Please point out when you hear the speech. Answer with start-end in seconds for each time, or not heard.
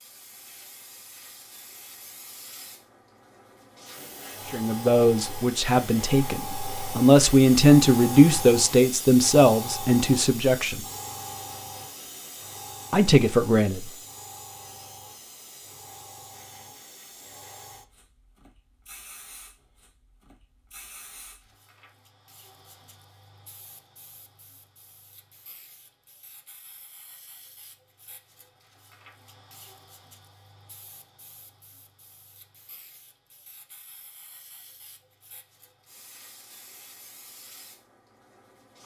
4.5-10.8, 12.9-13.8.